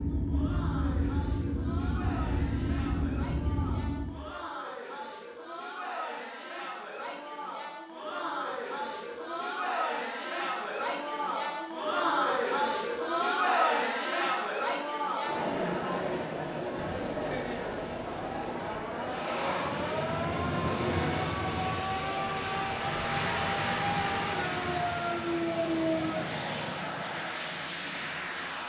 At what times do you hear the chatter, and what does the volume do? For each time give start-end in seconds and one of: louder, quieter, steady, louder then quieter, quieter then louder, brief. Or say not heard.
0.1-28.6 louder then quieter.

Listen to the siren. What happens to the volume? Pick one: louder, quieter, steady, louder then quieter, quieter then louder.
louder.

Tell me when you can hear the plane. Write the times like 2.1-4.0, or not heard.
0.0-4.3, 19.0-28.6.